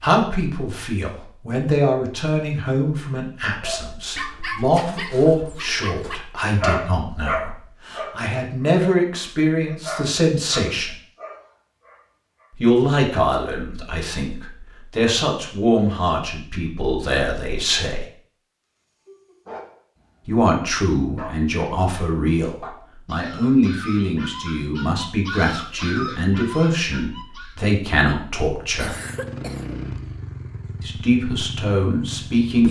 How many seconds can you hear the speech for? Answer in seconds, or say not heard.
27 s.